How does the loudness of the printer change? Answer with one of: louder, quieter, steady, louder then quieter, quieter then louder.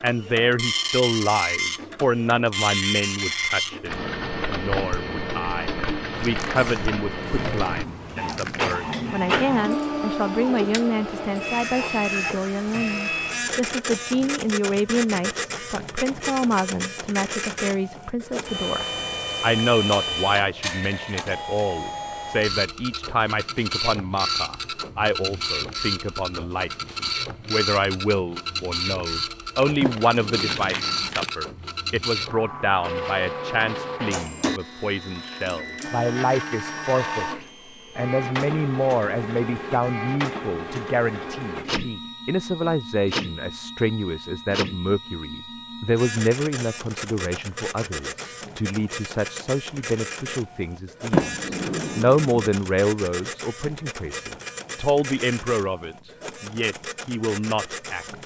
quieter.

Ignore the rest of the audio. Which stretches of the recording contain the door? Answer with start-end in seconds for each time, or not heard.
6.2-8.8, 29.8-31.1, 51.1-52.5.